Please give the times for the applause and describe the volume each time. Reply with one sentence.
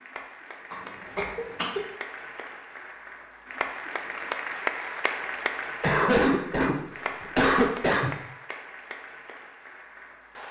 You can hear the applause from 0.0 to 10.4 s, getting louder then quieter.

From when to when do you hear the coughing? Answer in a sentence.
The coughing can be heard from 0.7 to 1.9 s and from 5.8 to 8.1 s.